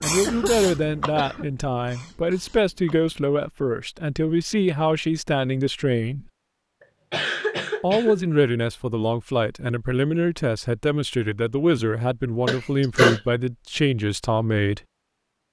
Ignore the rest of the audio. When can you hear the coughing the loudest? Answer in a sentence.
The volume of the coughing peaks at 13 seconds.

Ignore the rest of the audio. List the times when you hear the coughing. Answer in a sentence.
The coughing can be heard from 0.2 to 1.4 s, from 7.1 to 8.2 s and from 12.4 to 13.2 s.